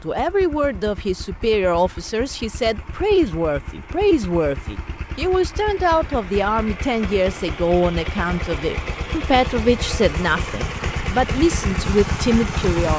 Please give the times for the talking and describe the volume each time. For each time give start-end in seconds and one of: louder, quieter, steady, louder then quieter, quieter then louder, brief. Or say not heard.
0.0-12.9 steady.